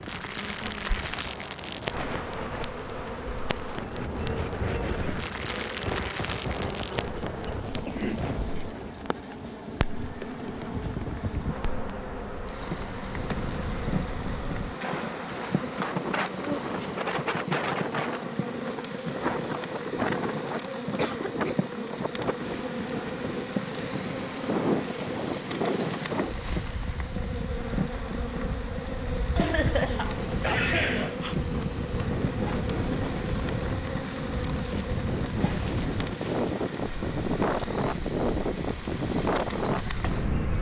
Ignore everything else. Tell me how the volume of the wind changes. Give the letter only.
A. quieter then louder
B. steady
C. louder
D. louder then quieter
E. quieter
C.